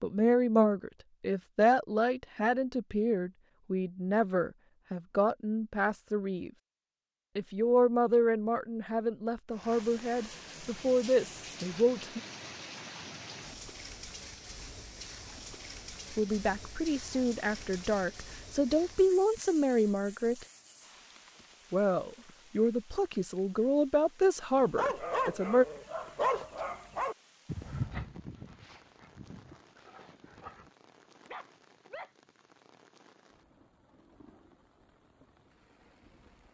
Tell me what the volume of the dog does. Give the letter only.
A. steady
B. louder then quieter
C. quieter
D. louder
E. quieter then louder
E.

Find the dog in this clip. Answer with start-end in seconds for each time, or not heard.
24.8-32.1.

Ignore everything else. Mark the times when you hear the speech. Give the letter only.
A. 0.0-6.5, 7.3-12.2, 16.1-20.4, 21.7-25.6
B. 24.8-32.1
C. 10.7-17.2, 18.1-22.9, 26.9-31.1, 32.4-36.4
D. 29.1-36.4
A.